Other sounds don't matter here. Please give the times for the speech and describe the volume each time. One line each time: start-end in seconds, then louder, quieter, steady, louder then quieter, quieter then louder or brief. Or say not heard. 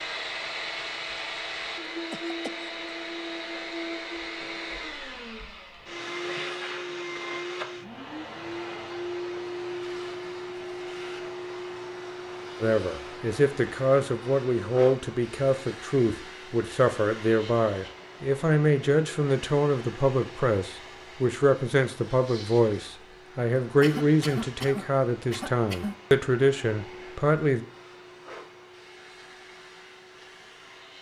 12.6-27.6 steady.